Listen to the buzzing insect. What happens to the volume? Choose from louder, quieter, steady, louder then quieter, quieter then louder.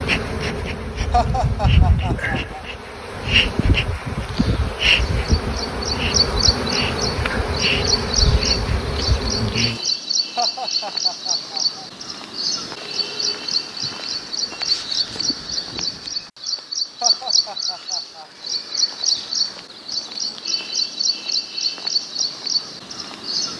steady.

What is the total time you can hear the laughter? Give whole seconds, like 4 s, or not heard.
4 s.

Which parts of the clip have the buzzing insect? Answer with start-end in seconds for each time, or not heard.
0.0-9.8.